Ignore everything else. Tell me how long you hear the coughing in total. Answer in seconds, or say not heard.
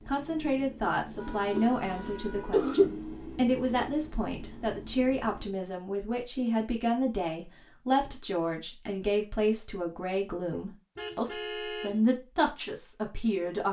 2 s.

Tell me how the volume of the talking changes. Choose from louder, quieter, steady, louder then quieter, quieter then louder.
steady.